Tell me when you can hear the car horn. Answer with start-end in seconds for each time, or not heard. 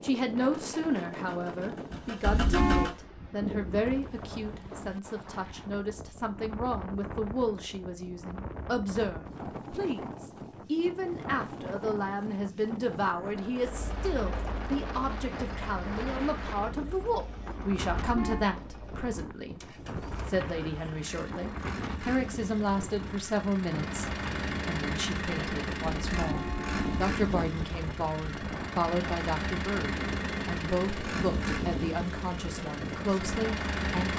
2.2-2.9, 17.9-18.5, 26.1-27.1.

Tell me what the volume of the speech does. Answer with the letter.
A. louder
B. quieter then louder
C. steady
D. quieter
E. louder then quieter
C.